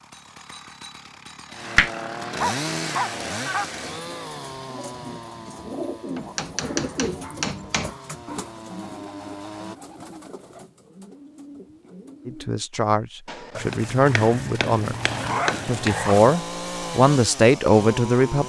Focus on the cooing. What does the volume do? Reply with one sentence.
The volume of the cooing goes up, then down.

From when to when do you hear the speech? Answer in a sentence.
The speech can be heard from 12.2 to 14.9 s and from 15.7 to 18.4 s.